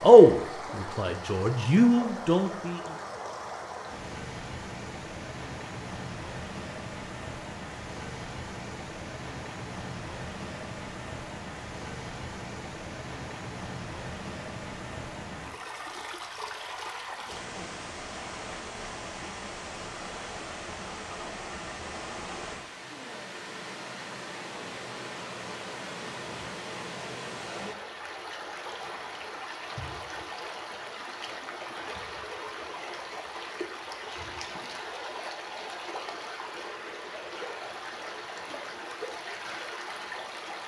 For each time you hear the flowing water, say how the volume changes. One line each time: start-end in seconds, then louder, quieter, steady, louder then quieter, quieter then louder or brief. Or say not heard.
0.0-40.6 steady.